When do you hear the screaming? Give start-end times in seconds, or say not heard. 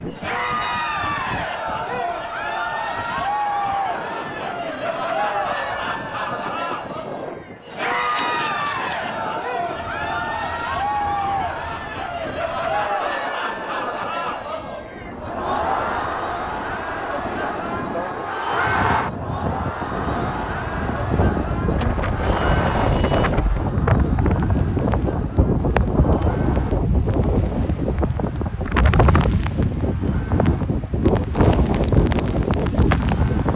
not heard.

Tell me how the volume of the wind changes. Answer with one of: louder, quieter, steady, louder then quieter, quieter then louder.
louder.